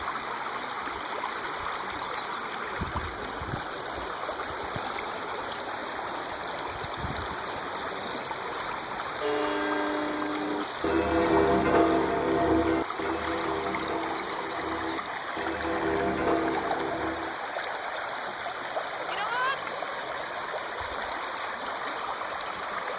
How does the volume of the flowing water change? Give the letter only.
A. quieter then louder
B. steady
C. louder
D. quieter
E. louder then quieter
B.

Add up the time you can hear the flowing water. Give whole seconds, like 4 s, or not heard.
23 s.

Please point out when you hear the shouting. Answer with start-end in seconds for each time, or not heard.
19.1-19.6.